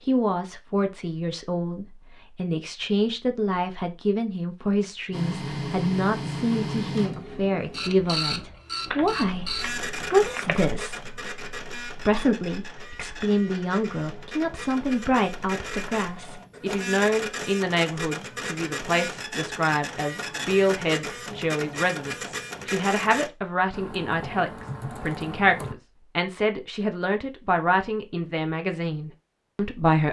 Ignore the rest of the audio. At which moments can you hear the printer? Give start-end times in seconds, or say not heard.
5.1-23.3.